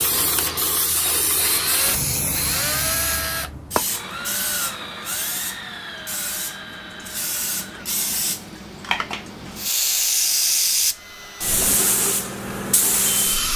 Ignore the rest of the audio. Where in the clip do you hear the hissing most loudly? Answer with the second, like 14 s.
10 s.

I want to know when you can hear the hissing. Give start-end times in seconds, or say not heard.
0.0-13.5.